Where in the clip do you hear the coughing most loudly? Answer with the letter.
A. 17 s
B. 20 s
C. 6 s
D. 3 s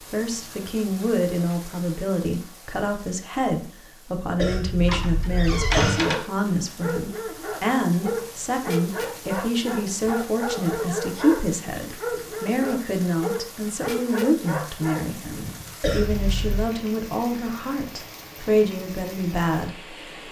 C.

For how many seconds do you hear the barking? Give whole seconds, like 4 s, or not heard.
10 s.